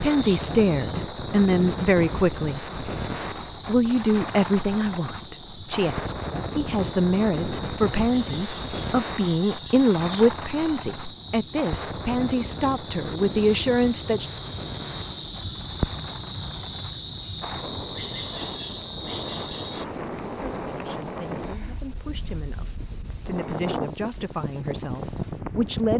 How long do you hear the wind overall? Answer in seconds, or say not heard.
26 s.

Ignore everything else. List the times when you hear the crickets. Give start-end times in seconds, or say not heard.
0.0-25.9.